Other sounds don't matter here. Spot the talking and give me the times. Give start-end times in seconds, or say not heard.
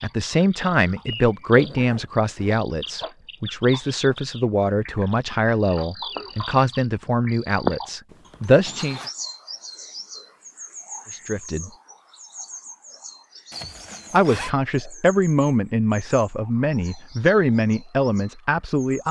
0.0-9.0, 11.1-11.7, 14.1-19.0.